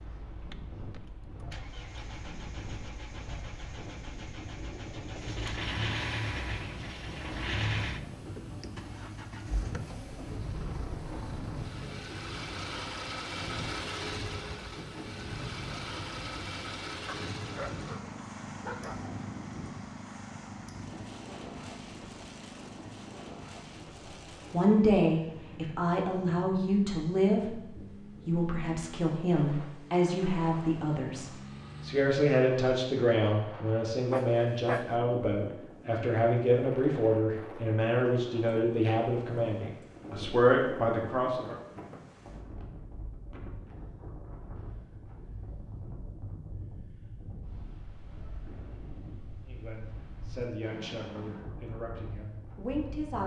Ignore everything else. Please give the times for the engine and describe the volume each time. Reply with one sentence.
The engine can be heard from 0.1 to 32.1 s, getting quieter.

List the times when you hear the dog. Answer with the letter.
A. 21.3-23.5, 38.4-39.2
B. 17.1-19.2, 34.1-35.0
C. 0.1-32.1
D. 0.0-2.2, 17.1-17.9
B.